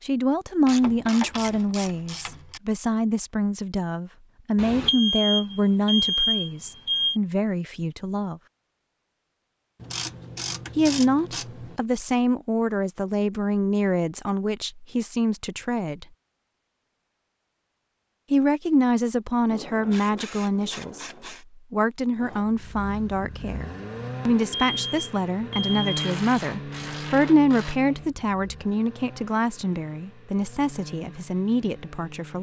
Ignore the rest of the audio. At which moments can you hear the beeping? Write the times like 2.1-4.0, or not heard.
4.6-7.2, 24.5-26.0.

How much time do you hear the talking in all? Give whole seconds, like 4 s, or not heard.
28 s.